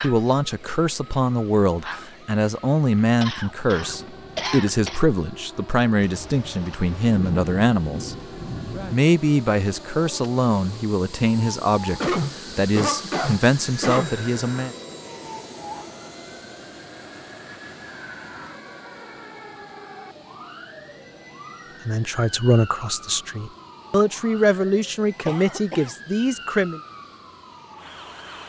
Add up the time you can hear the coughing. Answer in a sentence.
You can hear the coughing for 5 seconds altogether.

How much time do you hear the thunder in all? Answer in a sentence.
You can hear the thunder for 3 seconds altogether.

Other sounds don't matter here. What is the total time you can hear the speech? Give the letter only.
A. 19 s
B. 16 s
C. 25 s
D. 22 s
A.